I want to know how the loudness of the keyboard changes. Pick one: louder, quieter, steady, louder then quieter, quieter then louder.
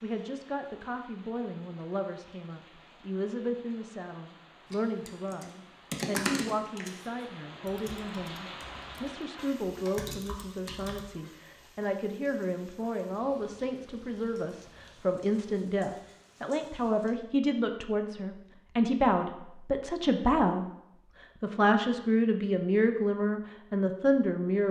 quieter then louder.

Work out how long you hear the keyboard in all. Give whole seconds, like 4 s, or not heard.
6 s.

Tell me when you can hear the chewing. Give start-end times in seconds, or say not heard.
not heard.